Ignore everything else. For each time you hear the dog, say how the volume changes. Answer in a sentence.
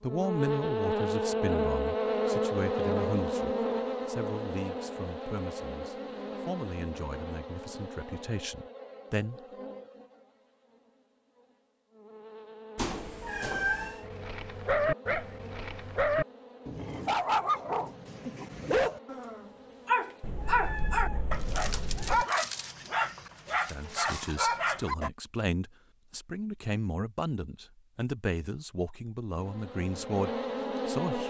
You can hear the dog from 14.0 to 25.1 s, at a steady volume.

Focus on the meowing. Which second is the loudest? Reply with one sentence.
The volume of the meowing peaks at 14 seconds.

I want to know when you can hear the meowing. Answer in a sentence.
You can hear the meowing from 12.8 to 14.1 s and from 20.2 to 22.2 s.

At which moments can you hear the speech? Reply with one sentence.
You can hear the speech from 0.0 to 9.4 s and from 23.5 to 31.2 s.